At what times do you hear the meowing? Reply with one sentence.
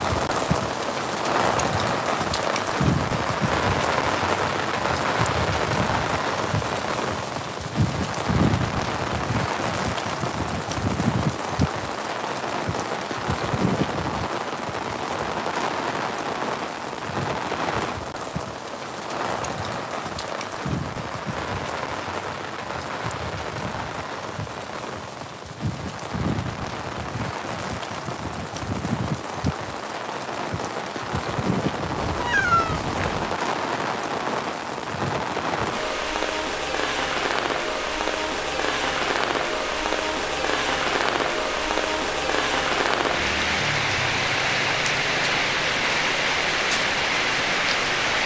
The meowing can be heard from 31.9 to 33.4 s.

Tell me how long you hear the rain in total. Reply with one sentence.
You can hear the rain for 48 seconds altogether.